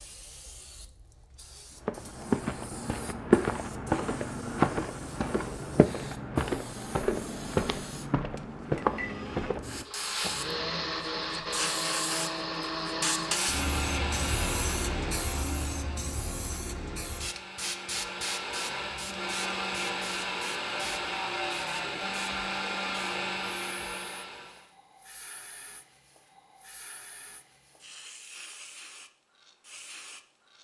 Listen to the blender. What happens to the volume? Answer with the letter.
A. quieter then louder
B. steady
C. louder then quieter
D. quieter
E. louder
A.